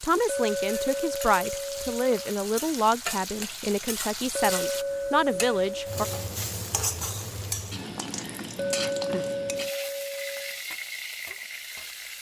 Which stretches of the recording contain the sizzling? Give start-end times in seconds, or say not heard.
0.0-12.1.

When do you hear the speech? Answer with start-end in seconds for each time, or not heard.
0.0-6.0.